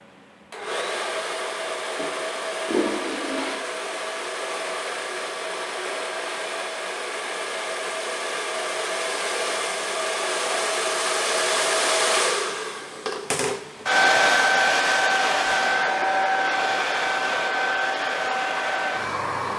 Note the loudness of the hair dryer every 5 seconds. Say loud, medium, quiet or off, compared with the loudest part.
medium, medium, loud, loud.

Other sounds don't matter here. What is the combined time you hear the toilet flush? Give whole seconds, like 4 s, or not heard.
2 s.